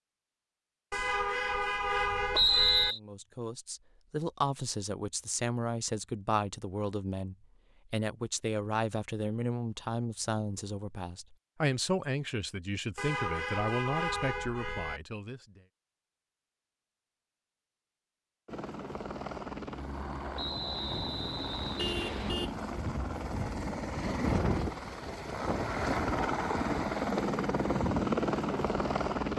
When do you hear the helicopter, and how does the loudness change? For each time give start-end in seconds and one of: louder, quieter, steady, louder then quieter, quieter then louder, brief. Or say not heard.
18.4-29.3 louder.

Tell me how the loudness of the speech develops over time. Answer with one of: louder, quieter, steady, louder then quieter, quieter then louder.
steady.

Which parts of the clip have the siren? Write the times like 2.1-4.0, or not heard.
not heard.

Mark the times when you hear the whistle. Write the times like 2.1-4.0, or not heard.
2.3-3.0, 20.4-22.4.